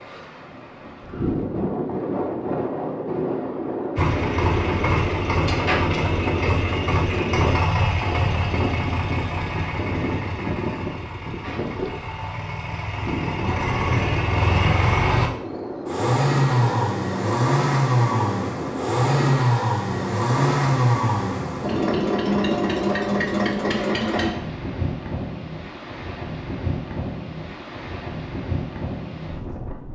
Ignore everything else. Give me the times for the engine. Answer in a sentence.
The engine can be heard from 4.0 to 24.3 s.